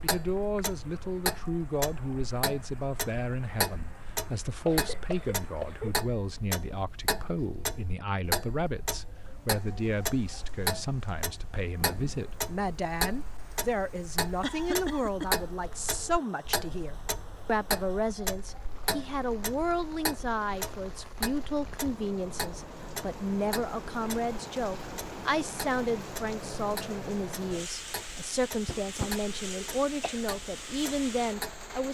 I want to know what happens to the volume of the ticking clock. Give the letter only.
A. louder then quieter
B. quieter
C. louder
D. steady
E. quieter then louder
B.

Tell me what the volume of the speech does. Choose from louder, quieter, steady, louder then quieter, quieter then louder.
steady.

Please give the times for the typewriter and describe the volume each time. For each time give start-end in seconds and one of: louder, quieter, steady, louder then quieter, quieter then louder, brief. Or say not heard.
not heard.